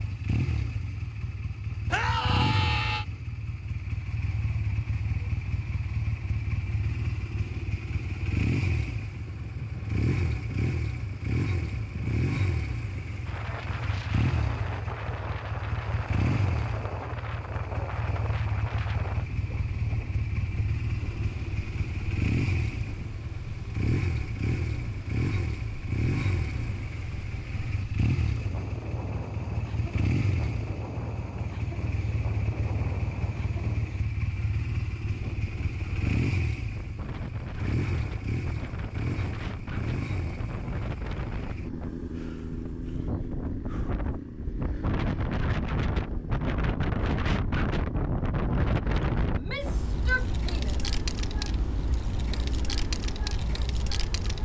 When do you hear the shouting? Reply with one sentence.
You can hear the shouting from 1.9 to 3.0 s and from 49.3 to 50.9 s.